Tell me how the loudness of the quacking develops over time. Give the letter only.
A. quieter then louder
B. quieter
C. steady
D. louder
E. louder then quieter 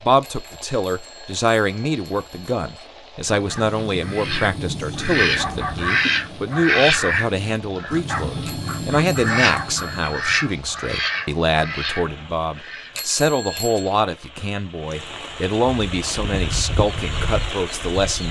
B.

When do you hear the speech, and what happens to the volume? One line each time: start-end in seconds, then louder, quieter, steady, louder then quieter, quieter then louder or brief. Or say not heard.
0.0-18.2 steady.